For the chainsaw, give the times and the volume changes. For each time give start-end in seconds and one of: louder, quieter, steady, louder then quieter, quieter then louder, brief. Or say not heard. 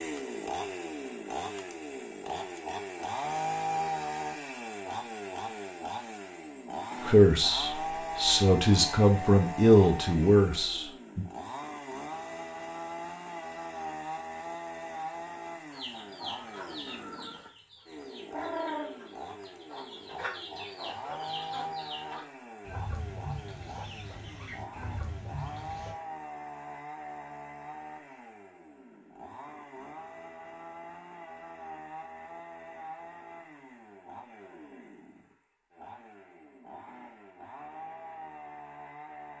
0.0-39.3 quieter.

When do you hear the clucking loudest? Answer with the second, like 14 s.
19 s.